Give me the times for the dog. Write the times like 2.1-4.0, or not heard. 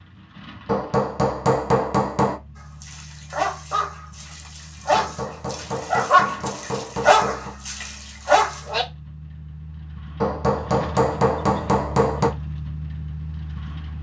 2.5-8.8.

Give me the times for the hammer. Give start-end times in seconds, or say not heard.
0.7-2.4, 4.9-7.5, 10.2-12.3.